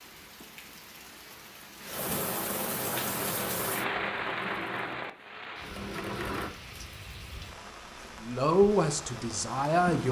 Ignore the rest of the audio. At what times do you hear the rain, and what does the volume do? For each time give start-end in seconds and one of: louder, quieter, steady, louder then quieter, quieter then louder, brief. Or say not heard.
0.0-10.0 louder then quieter.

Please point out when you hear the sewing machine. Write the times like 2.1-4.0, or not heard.
3.1-6.5.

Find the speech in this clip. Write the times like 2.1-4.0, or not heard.
8.2-10.0.